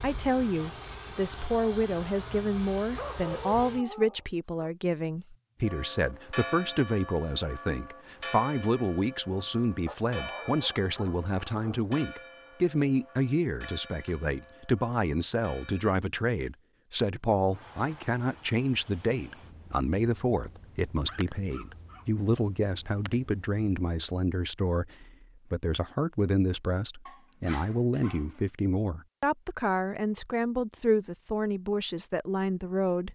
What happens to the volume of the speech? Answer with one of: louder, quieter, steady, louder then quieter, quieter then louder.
steady.